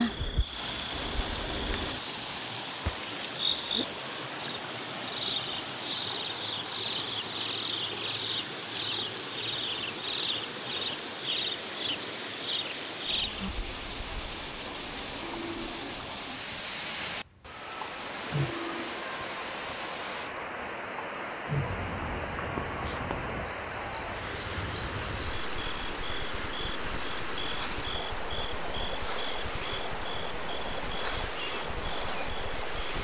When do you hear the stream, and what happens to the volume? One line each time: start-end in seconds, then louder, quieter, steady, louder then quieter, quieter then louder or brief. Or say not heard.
0.0-32.9 steady.